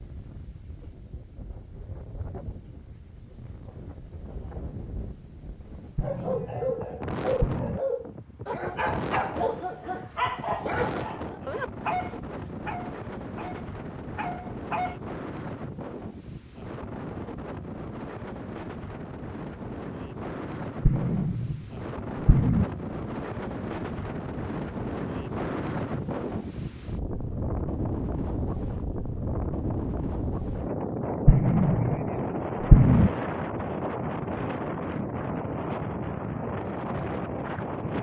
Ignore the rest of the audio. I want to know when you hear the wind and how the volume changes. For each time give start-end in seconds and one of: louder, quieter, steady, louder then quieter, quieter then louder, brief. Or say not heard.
0.0-37.9 louder.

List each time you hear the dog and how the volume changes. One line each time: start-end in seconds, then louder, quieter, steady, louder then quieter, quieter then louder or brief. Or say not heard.
6.0-14.9 quieter.